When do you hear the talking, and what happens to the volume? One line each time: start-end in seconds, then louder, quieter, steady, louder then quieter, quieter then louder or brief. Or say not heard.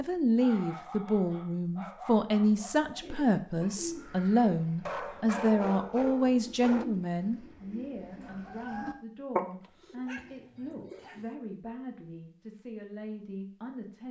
0.0-14.0 quieter.